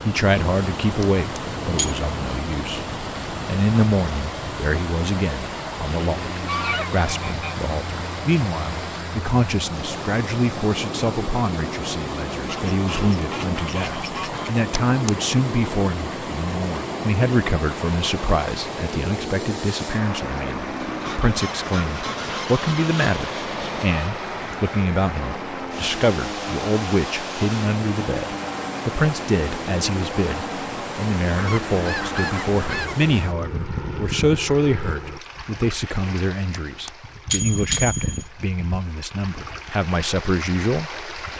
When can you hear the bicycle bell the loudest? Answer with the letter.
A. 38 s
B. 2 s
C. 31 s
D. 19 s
A.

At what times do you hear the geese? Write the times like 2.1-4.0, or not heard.
6.2-7.5, 12.4-14.5, 20.9-23.0, 31.4-33.0.